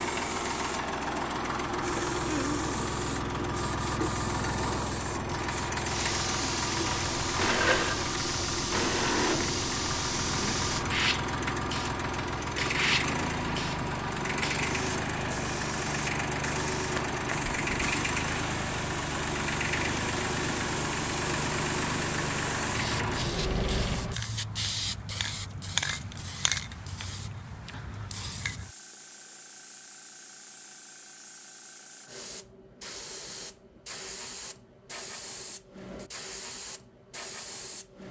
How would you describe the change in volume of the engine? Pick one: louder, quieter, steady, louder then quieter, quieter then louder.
steady.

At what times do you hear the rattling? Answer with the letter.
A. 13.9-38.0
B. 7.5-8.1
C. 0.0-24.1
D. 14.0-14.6
B.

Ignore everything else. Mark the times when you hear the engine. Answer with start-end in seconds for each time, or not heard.
0.0-24.1.